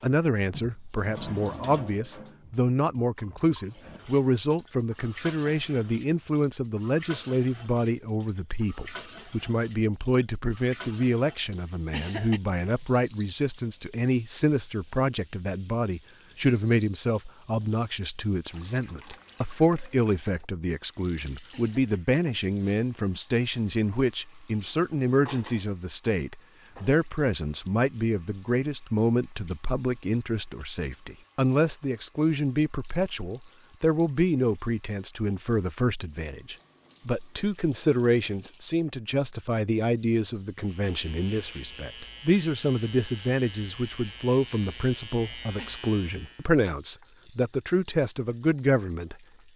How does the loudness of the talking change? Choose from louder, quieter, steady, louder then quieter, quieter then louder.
steady.